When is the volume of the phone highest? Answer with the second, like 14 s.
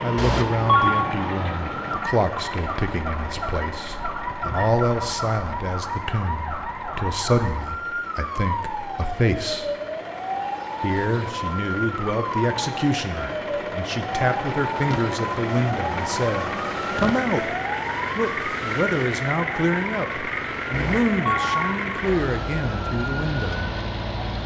1 s.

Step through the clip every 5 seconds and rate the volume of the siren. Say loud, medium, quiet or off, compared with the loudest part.
loud, loud, loud, loud, medium.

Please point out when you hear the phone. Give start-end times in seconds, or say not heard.
0.1-1.1, 20.7-21.6.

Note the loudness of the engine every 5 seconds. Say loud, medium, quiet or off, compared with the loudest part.
medium, quiet, medium, loud, loud.